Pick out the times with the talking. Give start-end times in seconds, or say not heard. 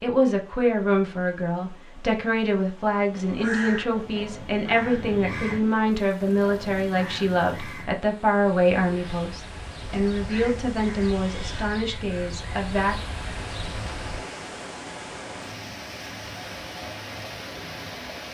0.0-12.9.